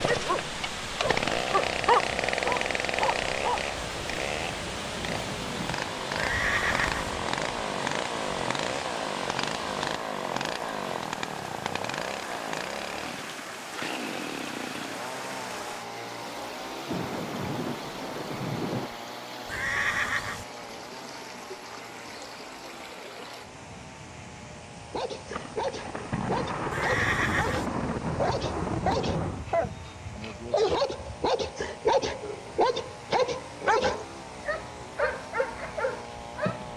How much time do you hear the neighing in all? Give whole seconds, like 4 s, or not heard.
3 s.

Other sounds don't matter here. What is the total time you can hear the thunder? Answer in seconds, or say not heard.
8 s.